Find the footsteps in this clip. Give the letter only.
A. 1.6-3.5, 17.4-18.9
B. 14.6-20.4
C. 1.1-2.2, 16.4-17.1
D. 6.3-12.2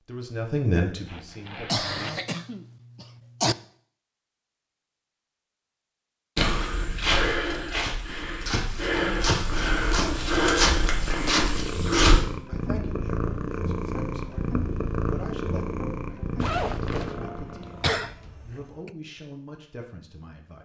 D.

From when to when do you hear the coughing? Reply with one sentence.
You can hear the coughing from 1.6 to 3.5 s and from 17.4 to 18.9 s.